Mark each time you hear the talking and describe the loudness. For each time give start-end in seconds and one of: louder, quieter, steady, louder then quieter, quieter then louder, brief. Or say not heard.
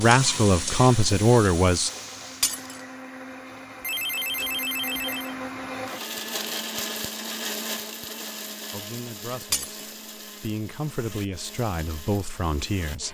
0.0-1.9 brief
8.7-13.0 louder.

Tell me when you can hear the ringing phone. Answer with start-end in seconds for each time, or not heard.
3.8-5.3.